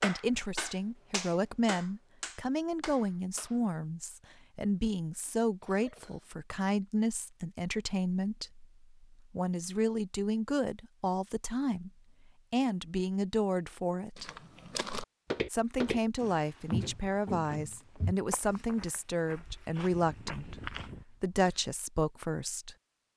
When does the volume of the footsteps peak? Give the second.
17 s.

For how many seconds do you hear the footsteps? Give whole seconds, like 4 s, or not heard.
7 s.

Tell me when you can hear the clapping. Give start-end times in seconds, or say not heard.
0.0-3.6.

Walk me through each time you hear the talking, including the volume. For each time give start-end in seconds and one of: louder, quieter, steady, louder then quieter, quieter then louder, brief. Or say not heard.
0.0-14.3 steady
15.5-22.8 steady.